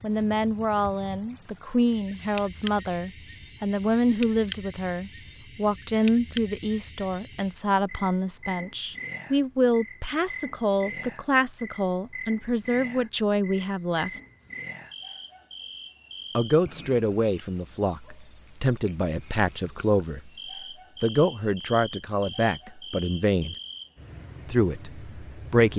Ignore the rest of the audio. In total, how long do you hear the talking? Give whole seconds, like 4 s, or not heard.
22 s.